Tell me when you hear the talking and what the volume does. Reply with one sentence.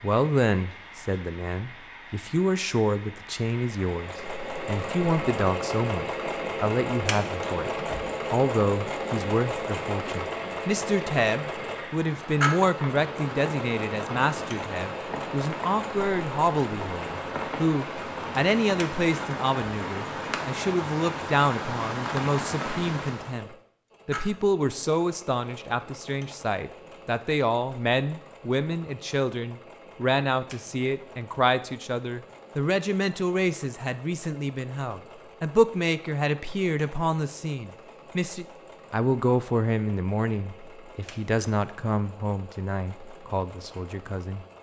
The talking can be heard from 0.0 to 44.5 s, at a steady volume.